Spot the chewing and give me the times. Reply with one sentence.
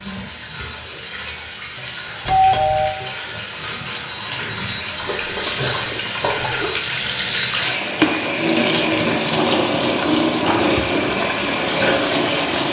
You can hear the chewing from 4.5 to 6.7 s.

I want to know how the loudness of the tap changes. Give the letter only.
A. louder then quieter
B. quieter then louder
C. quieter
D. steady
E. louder
E.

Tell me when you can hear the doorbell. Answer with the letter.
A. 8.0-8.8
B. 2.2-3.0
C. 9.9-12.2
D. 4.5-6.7
B.